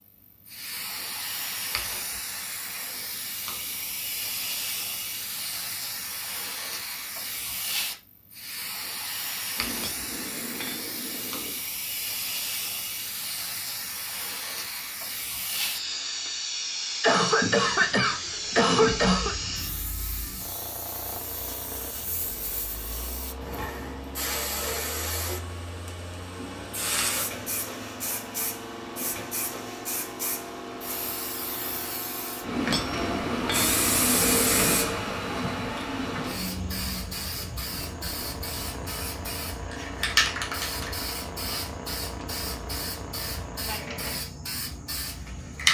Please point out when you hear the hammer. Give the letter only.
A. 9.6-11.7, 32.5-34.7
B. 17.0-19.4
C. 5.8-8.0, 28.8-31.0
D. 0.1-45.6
A.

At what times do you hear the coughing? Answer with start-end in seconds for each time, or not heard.
17.0-19.4.